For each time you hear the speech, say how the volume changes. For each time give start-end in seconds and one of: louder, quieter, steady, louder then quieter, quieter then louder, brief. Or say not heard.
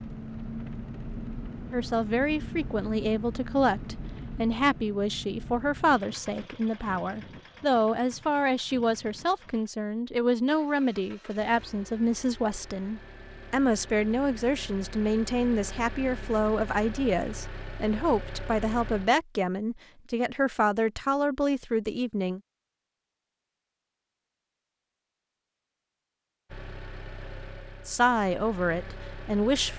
1.7-22.4 steady
27.9-29.7 brief.